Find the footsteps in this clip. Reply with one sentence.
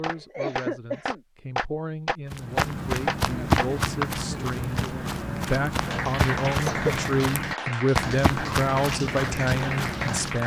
The footsteps can be heard from 2.3 to 10.4 s.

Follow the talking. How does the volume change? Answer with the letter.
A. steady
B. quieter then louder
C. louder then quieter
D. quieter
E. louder
E.